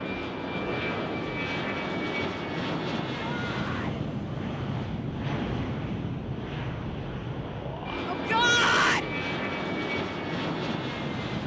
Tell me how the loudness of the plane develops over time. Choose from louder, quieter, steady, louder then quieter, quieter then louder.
steady.